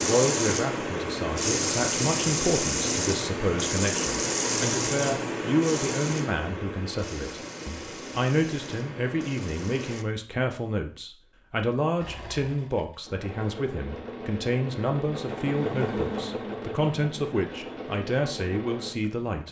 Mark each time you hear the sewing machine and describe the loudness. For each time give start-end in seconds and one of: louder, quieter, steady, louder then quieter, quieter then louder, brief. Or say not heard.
0.0-10.1 quieter
11.9-19.4 louder then quieter.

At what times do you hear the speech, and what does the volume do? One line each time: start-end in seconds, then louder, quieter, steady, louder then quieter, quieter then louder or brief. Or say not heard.
0.0-19.4 steady.